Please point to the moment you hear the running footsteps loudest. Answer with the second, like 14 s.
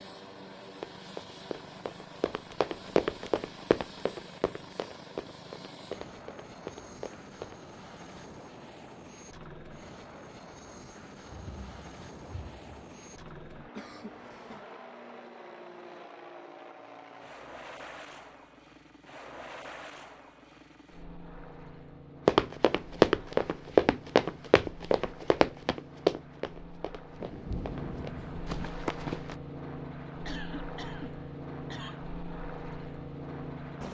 23 s.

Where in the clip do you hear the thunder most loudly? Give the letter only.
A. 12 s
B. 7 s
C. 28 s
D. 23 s
C.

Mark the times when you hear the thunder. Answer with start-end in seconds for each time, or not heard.
11.3-12.7, 27.2-28.7.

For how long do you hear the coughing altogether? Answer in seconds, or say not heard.
3 s.